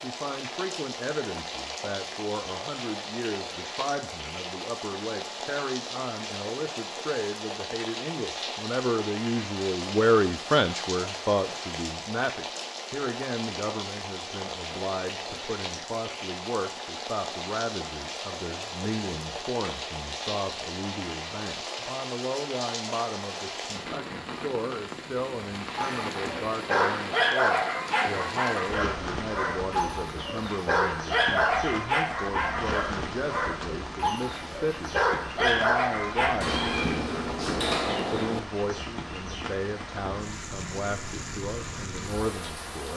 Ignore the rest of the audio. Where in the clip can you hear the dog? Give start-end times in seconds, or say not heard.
25.8-36.9.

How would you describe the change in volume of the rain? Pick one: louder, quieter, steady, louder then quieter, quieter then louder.
steady.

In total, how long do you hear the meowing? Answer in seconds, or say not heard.
2 s.